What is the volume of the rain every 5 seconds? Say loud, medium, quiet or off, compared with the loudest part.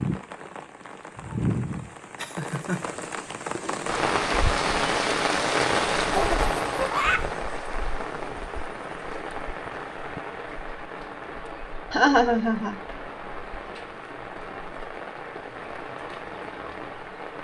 loud, loud, medium, medium.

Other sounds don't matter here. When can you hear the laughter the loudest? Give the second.
12 s.